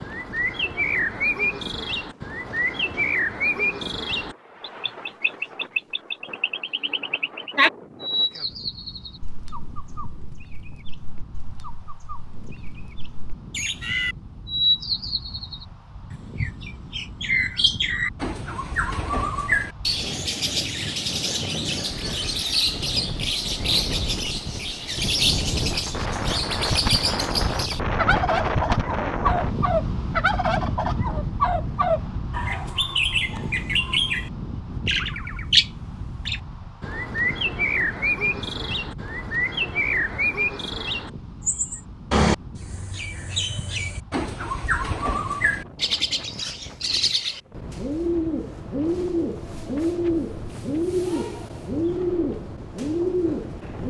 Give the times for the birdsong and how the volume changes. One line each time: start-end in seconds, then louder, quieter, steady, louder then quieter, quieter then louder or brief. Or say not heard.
0.0-53.8 steady.